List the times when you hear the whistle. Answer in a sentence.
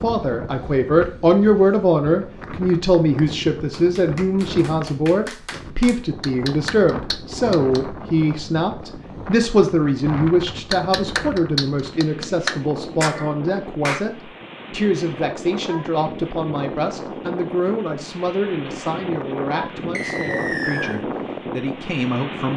The whistle can be heard from 19.9 to 20.9 s.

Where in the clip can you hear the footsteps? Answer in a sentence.
The footsteps can't be heard in this clip.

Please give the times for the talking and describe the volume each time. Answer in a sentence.
The talking can be heard from 0.0 to 22.5 s, getting quieter.